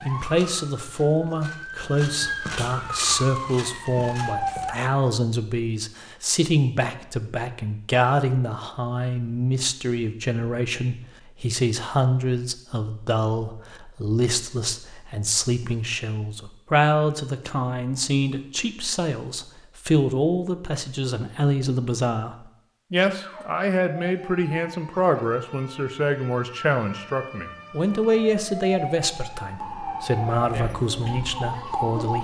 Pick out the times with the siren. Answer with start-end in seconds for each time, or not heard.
0.0-4.8, 23.1-32.2.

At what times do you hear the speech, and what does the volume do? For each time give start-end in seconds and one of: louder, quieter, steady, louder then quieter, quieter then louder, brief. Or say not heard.
0.0-32.2 steady.